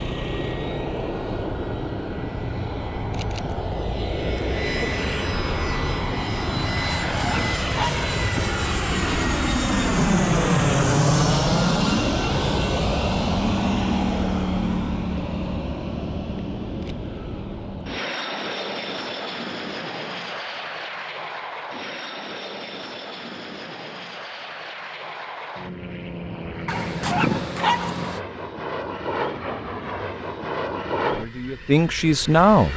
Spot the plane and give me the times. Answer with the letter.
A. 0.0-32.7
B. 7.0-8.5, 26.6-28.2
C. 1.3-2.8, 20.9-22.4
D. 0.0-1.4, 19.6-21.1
A.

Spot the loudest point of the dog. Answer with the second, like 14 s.
27 s.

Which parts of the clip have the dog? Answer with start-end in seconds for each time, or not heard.
7.0-8.5, 26.6-28.2.